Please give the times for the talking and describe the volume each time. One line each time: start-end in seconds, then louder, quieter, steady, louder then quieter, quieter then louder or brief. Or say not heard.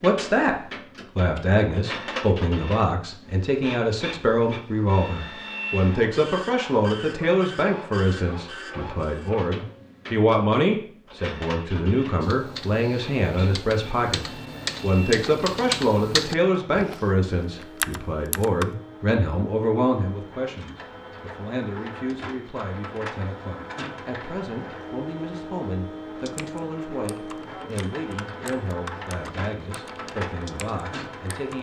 0.0-31.5 quieter.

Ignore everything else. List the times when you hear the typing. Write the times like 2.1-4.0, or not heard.
12.2-18.7, 26.2-31.5.